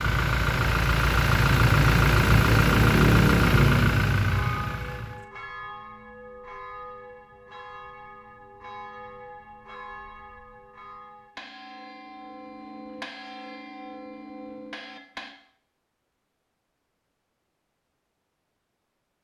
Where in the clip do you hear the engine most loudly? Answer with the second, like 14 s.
3 s.